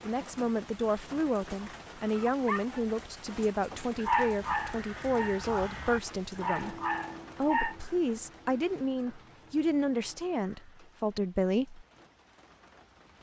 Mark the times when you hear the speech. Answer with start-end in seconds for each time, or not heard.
0.0-6.8, 7.3-11.8.